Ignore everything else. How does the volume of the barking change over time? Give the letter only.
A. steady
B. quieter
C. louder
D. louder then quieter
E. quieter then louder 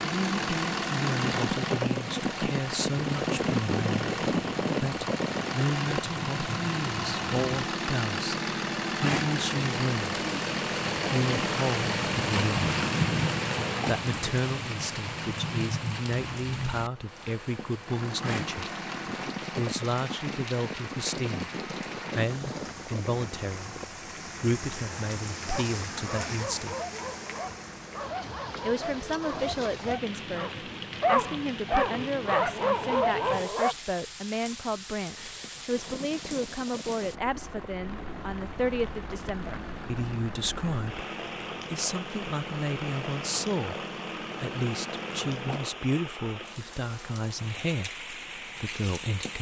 C.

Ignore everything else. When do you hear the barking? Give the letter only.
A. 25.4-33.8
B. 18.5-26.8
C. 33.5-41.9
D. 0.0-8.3
A.